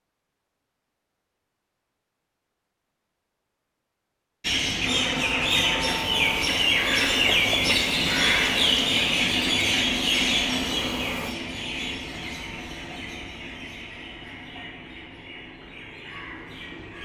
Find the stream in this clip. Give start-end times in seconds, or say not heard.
not heard.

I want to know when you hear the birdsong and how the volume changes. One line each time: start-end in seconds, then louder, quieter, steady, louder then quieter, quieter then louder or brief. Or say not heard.
4.4-16.9 quieter.